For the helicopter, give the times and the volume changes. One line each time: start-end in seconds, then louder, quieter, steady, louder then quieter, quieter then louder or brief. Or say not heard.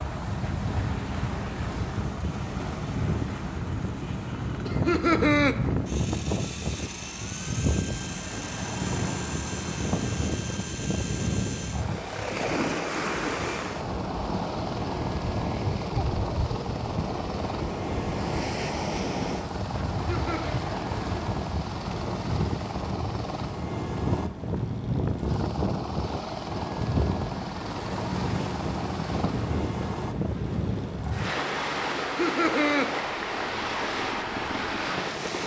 0.0-35.4 steady.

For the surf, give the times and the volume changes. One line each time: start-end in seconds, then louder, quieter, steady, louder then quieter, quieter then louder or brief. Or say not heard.
0.0-35.4 steady.